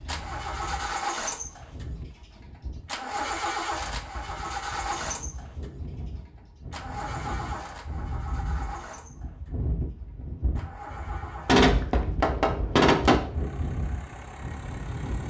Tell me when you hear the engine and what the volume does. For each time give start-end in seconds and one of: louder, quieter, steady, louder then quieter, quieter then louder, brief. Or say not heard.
0.0-15.2 quieter.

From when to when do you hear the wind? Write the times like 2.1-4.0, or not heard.
0.0-15.2.